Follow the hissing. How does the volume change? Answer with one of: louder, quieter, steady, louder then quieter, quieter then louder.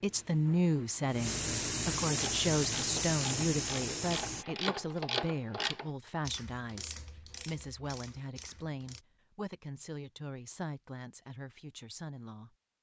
louder.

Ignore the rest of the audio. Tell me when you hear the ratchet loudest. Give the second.
5 s.